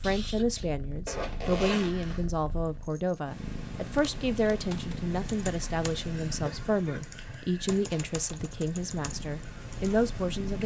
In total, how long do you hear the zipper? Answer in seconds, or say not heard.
2 s.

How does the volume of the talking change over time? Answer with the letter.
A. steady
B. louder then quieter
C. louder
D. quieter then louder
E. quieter
A.